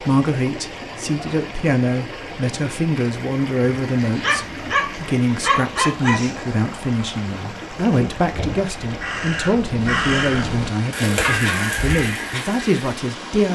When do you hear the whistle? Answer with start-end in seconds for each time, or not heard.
not heard.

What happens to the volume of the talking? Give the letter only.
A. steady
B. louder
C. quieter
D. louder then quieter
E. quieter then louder
A.